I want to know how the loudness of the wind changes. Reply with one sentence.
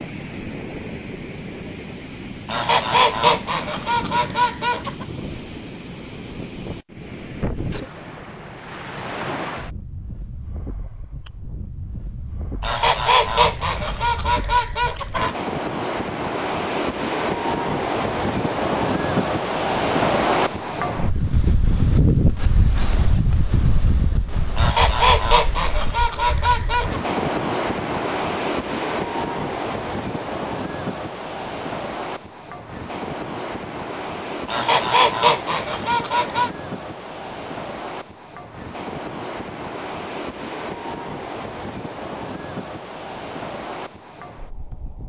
The loudness of the wind goes up, then down.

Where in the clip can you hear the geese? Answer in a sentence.
You can hear the geese from 2.5 to 5.0 s, from 12.6 to 15.3 s, from 24.6 to 27.0 s and from 34.5 to 36.5 s.